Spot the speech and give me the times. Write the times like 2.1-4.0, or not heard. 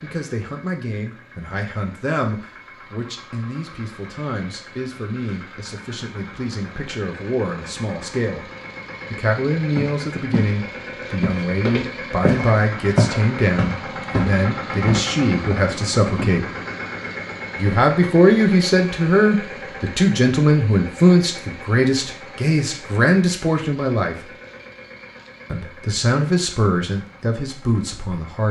0.0-8.4, 9.1-16.4, 17.6-24.3, 25.5-28.4.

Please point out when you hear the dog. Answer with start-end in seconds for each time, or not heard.
not heard.